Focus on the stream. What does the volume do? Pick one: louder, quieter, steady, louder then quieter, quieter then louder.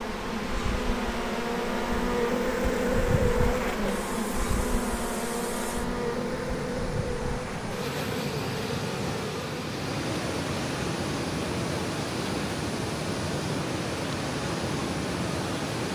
louder.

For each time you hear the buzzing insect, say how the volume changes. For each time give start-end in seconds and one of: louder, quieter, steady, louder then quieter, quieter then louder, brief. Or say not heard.
0.0-15.8 quieter.